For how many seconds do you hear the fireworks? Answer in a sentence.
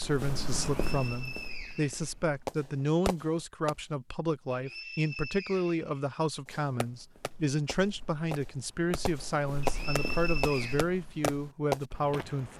You can hear the fireworks for 7 seconds altogether.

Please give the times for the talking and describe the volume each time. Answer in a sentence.
You can hear the talking from 0.0 to 12.5 s, at a steady volume.